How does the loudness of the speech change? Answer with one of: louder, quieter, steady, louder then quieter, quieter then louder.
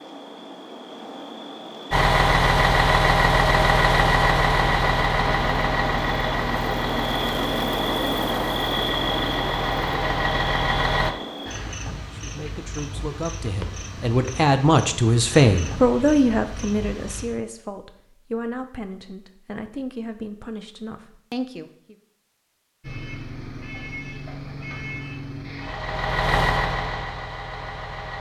louder then quieter.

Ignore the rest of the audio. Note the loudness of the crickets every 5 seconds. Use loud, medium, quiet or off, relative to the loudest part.
medium, loud, medium, medium, off, off.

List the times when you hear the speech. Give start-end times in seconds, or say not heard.
12.1-21.9.